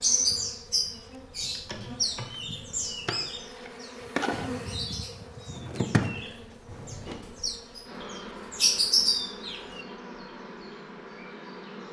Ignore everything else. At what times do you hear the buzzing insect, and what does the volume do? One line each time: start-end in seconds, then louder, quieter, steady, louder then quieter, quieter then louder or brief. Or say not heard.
0.0-11.8 louder then quieter.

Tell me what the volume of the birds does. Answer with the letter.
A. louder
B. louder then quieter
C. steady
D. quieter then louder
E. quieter
D.